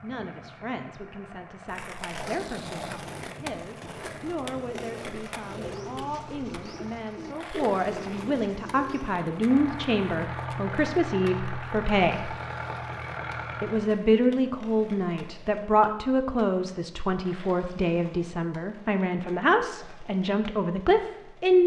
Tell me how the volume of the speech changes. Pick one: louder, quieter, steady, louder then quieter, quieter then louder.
louder.